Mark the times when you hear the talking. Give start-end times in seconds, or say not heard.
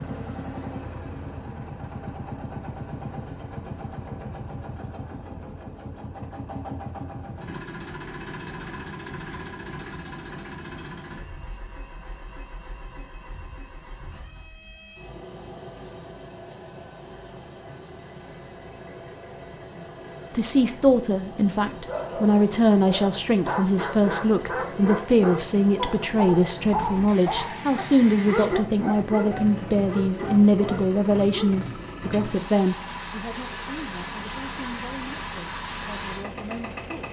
20.3-37.0.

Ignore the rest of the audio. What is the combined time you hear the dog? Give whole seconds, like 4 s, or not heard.
10 s.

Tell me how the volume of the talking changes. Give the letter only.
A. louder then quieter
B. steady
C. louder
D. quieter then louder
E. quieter
E.